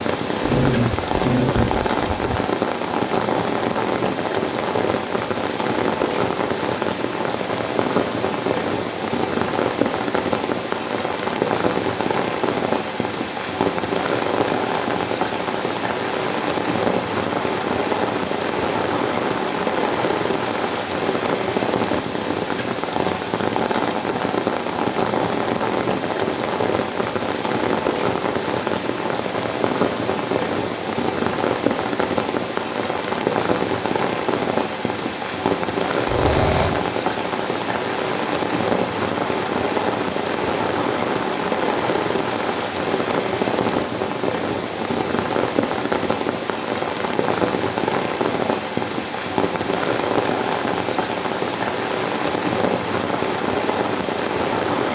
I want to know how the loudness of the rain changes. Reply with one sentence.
The volume of the rain stays about the same.